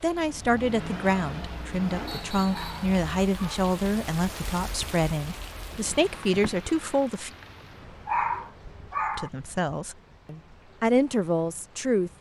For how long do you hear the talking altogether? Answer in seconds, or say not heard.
10 s.